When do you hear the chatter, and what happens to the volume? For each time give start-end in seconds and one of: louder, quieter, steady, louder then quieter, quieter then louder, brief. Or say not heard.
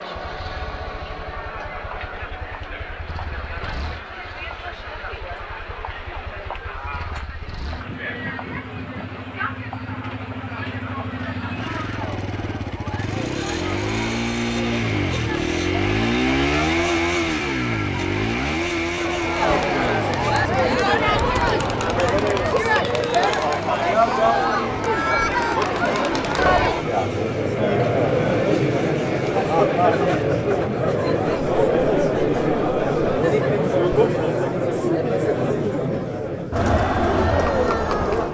0.0-38.2 louder.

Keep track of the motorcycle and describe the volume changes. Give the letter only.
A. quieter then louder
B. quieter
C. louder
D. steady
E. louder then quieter
E.